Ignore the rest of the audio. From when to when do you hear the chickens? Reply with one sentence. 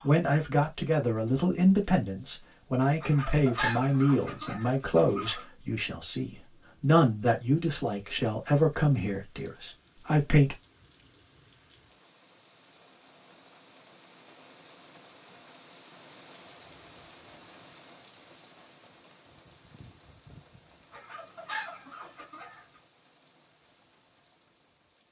You can hear the chickens from 3.0 to 5.5 s and from 20.9 to 22.8 s.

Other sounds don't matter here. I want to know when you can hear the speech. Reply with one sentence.
You can hear the speech from 0.0 to 10.6 s.